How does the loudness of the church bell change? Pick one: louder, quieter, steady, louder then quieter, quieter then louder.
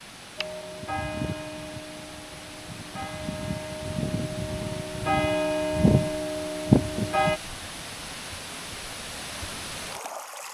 quieter then louder.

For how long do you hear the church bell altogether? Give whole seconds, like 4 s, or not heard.
7 s.